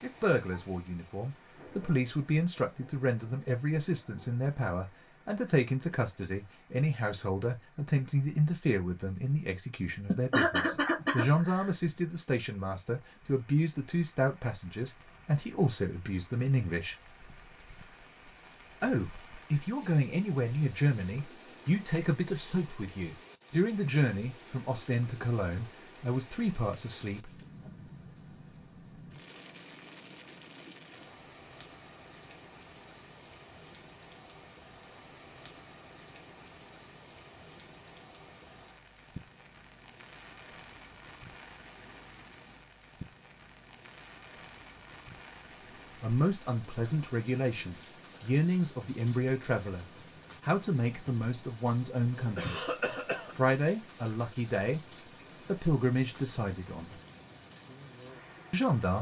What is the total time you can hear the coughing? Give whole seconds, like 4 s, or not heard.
3 s.